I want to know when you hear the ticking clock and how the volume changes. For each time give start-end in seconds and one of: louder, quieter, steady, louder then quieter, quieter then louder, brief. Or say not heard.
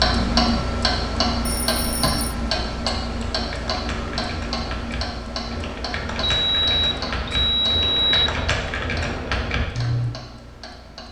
0.0-11.0 quieter.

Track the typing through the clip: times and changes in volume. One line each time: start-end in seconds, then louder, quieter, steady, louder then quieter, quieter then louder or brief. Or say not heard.
3.3-10.1 louder.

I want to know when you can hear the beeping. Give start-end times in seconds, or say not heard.
1.4-2.4, 6.2-8.4.